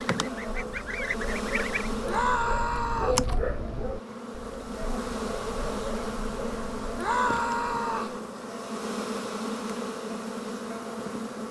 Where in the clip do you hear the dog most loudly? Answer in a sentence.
The loudest moment of the dog is at 3 seconds.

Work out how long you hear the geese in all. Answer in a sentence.
The geese can be heard for 2 seconds in total.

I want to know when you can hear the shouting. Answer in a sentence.
The shouting can be heard from 2.0 to 3.2 s and from 7.0 to 8.2 s.